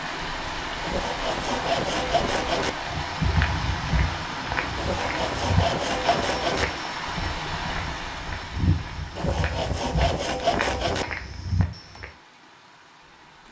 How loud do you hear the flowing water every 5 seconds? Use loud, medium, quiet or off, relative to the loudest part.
loud, loud, quiet.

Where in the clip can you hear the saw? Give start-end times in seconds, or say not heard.
0.8-2.7, 4.8-6.7, 9.2-11.1.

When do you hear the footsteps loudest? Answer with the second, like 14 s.
3 s.